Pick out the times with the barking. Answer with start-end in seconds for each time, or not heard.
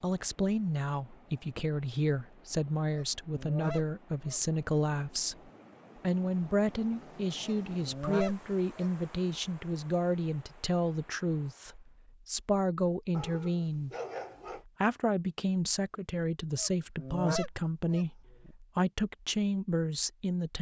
13.1-14.7.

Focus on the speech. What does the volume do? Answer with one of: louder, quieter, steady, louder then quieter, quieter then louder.
steady.